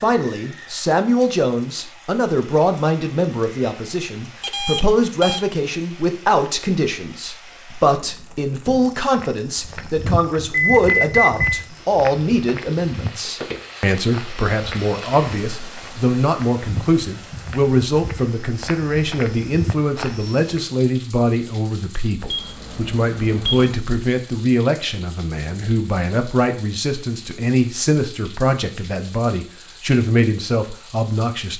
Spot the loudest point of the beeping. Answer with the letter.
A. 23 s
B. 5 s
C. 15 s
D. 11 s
D.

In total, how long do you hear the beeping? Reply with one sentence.
You can hear the beeping for 4 seconds altogether.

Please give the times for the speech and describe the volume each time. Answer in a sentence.
You can hear the speech from 0.0 to 31.5 s, at a steady volume.